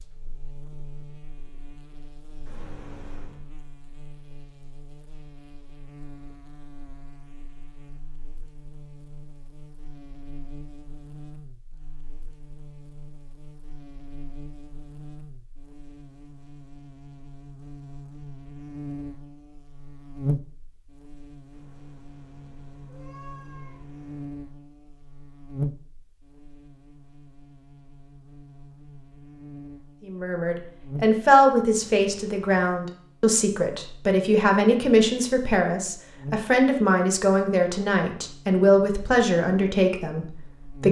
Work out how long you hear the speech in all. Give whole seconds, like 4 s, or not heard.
11 s.